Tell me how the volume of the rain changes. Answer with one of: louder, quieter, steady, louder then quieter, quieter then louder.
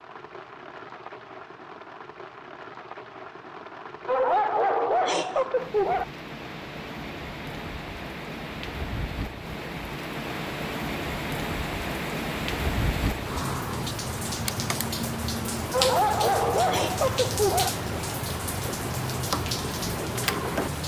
louder.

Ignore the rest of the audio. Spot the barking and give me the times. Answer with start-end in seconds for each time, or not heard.
4.0-6.0, 15.7-17.7.